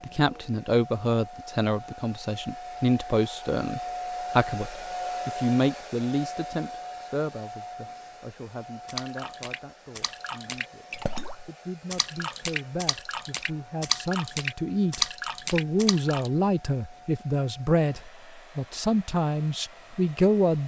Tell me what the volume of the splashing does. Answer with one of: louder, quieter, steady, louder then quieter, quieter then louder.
louder.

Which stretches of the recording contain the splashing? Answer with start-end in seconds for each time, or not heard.
8.8-16.3.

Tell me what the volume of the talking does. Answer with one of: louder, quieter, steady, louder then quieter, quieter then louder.
quieter then louder.